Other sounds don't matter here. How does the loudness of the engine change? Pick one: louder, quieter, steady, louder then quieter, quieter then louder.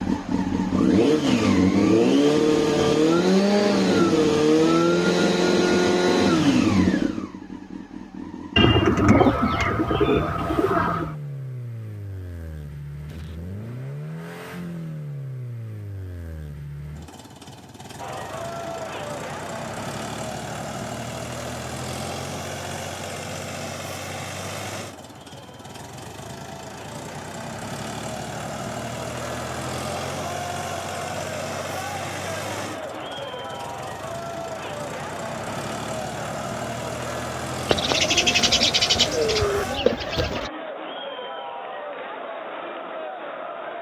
quieter.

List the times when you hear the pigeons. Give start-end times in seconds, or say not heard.
8.6-11.2, 37.6-40.5.